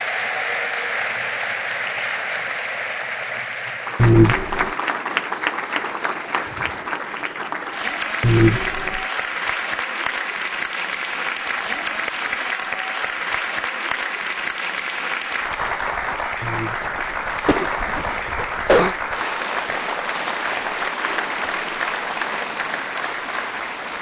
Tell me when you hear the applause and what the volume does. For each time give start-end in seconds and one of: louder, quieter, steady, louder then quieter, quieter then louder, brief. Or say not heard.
0.0-23.9 steady.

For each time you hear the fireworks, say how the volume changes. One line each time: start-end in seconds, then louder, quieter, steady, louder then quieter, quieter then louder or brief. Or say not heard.
not heard.